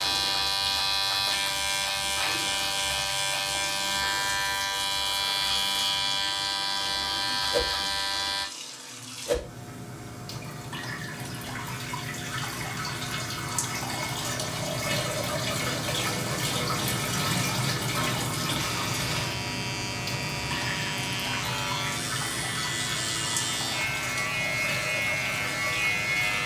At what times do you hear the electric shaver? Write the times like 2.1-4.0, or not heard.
0.0-8.4, 18.6-26.4.